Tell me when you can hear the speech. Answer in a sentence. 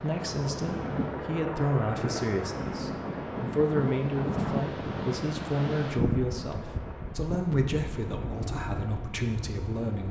The speech can be heard from 0.0 to 10.0 s.